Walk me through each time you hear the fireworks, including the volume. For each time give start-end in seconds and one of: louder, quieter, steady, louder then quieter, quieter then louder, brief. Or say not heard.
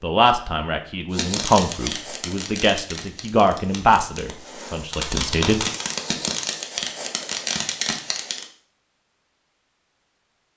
1.1-8.4 quieter then louder.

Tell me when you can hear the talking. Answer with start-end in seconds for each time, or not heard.
0.0-5.7.